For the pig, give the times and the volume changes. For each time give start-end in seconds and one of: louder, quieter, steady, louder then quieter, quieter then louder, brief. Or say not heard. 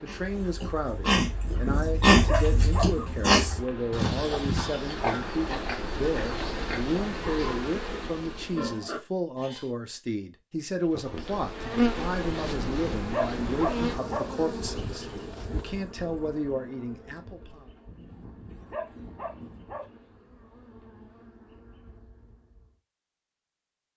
0.1-9.7 quieter.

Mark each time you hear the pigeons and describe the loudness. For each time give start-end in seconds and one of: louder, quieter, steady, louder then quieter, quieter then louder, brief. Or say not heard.
not heard.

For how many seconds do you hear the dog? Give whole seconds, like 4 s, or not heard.
6 s.